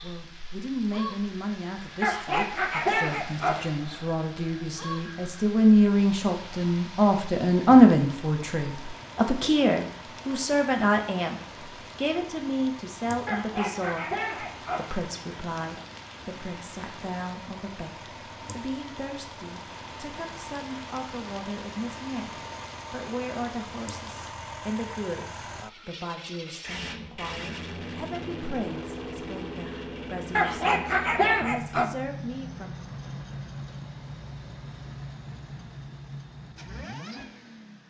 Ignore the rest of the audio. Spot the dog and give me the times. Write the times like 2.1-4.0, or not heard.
2.0-3.7, 13.2-14.9, 30.4-31.9.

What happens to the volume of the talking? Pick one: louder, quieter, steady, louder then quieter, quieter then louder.
louder then quieter.